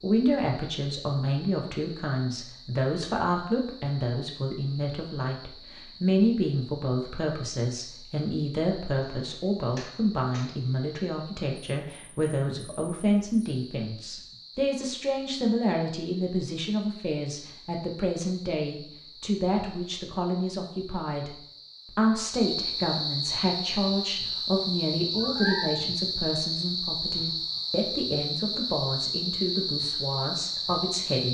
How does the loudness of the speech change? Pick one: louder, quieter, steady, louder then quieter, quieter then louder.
steady.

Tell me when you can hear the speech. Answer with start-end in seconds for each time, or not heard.
0.0-31.3.